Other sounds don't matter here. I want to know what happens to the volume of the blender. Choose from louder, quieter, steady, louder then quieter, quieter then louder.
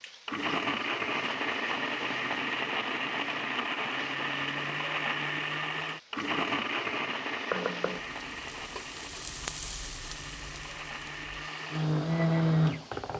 quieter then louder.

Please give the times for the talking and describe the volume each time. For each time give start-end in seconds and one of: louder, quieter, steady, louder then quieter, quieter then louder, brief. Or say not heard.
not heard.